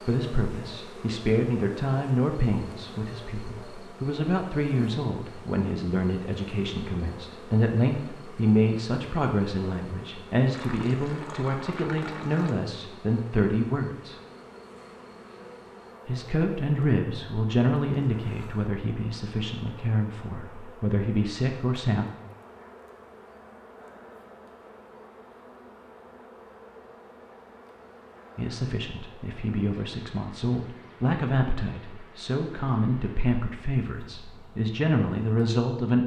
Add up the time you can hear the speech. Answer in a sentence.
You can hear the speech for 28 seconds altogether.